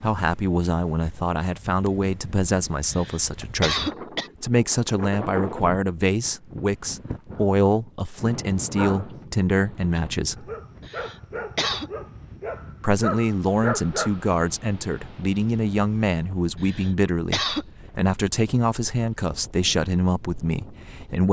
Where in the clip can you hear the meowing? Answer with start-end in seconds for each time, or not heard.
not heard.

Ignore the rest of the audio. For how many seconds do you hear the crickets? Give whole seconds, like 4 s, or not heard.
not heard.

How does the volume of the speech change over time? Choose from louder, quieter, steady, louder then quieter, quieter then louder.
steady.